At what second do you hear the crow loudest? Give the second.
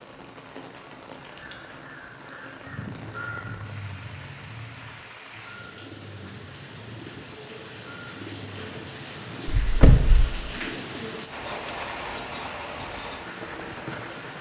3 s.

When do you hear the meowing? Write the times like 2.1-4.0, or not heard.
not heard.